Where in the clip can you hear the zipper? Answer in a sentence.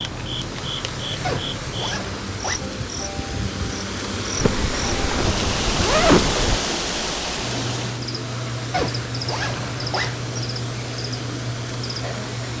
You can hear the zipper from 1.2 to 2.6 s, from 4.3 to 6.6 s and from 8.7 to 10.3 s.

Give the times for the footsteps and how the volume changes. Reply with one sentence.
You can't hear the footsteps here.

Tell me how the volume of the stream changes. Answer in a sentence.
The volume of the stream goes up, then down.